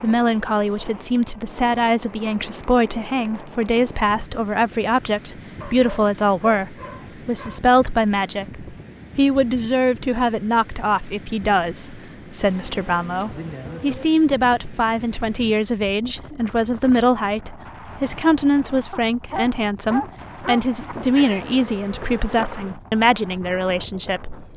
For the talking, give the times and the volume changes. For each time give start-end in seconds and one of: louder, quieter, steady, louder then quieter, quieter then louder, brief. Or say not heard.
0.0-24.5 steady.